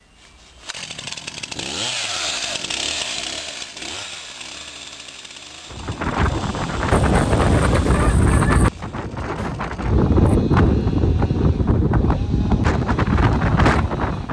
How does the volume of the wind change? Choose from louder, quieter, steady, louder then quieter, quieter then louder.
steady.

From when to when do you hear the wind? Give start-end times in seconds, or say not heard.
5.7-14.2.